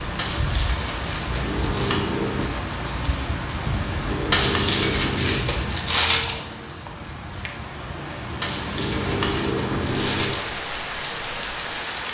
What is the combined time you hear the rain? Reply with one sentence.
The rain can be heard for 12 seconds in total.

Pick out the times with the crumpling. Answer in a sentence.
You can hear the crumpling from 0.1 to 2.0 s, from 4.3 to 6.3 s and from 8.4 to 10.4 s.